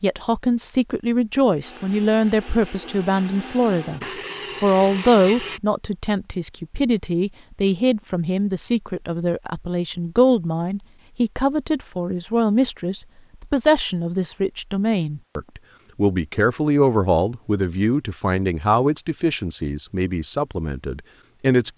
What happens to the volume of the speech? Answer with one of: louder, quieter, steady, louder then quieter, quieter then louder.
steady.